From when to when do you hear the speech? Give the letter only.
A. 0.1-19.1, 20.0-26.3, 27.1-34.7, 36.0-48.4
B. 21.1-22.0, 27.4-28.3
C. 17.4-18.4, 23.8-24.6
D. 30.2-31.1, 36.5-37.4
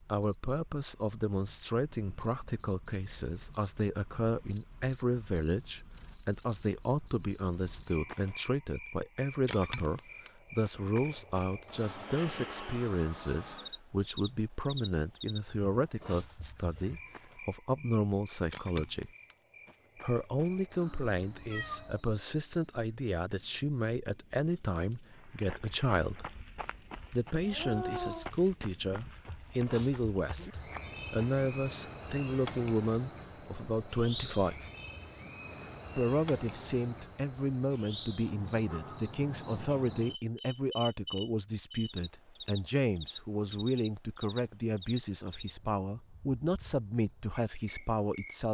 A.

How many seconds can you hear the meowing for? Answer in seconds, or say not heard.
2 s.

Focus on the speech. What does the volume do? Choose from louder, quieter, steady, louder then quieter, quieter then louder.
steady.